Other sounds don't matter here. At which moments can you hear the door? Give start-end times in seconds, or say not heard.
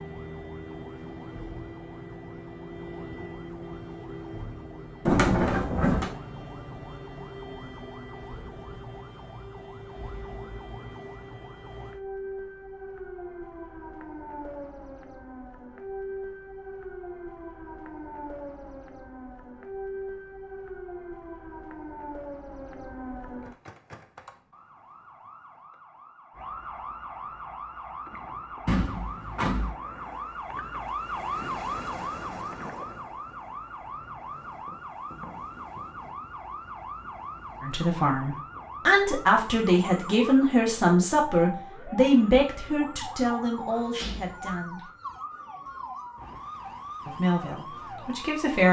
5.0-6.1, 28.6-29.8, 44.0-44.5.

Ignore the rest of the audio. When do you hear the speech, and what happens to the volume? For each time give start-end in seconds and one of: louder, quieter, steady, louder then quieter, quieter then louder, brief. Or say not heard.
37.6-44.9 quieter
47.0-48.6 brief.